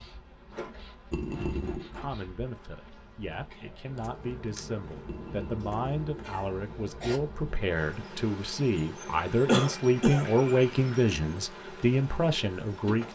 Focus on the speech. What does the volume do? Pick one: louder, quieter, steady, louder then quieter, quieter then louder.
louder.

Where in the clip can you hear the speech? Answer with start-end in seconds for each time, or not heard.
1.9-13.1.